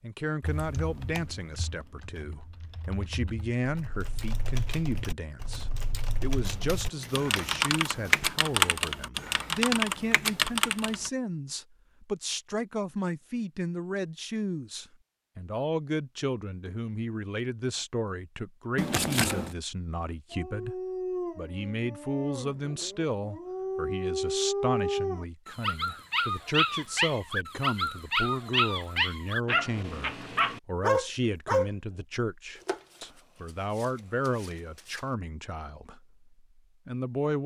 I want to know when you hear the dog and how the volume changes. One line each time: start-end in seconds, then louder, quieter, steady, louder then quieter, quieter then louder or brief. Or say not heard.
20.1-31.7 louder.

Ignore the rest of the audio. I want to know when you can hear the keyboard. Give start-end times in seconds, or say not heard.
0.4-11.1.